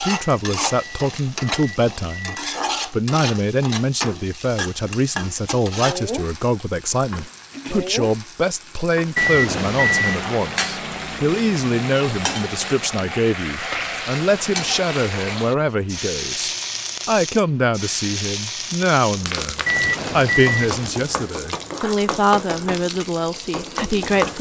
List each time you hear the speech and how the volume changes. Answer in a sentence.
The speech can be heard from 0.0 to 24.3 s, at a steady volume.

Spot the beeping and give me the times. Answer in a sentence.
You can hear the beeping from 0.2 to 2.5 s, from 9.2 to 10.2 s and from 19.6 to 21.0 s.